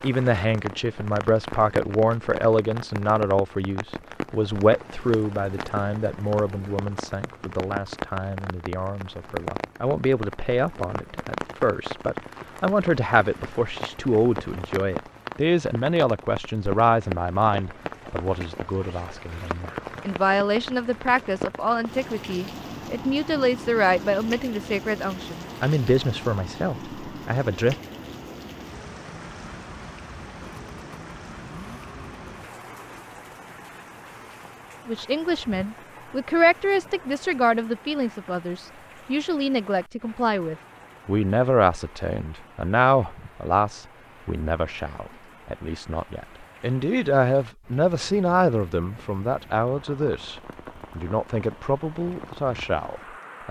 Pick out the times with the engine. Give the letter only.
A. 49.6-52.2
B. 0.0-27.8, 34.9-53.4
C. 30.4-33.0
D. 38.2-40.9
C.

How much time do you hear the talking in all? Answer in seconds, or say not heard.
46 s.